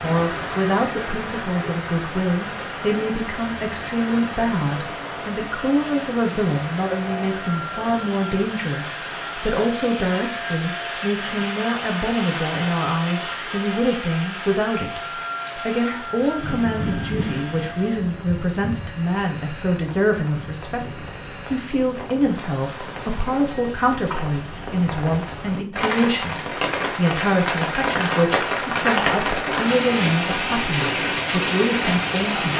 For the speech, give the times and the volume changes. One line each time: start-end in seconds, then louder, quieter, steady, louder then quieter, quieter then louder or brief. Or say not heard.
0.0-32.5 steady.